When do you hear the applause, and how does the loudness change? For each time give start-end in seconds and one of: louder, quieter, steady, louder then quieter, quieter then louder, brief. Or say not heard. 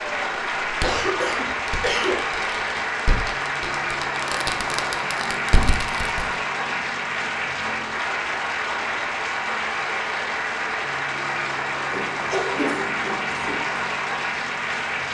0.0-15.0 steady.